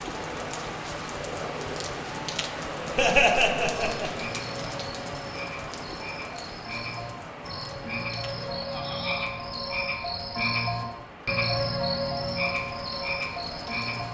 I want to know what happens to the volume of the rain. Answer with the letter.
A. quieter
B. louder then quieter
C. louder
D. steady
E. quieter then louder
A.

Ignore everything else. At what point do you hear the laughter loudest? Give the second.
3 s.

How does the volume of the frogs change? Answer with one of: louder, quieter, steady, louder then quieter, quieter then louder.
louder.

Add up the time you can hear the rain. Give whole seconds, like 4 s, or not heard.
14 s.